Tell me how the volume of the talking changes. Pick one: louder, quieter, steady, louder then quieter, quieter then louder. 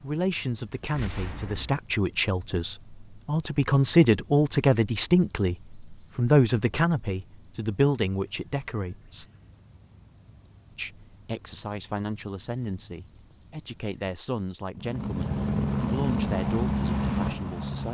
louder then quieter.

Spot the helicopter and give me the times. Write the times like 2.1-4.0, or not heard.
14.8-17.8.